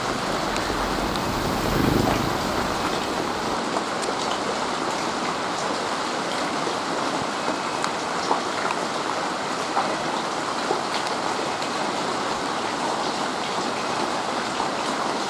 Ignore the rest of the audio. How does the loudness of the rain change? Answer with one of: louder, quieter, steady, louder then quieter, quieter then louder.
steady.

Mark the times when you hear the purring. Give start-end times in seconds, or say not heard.
0.0-3.6.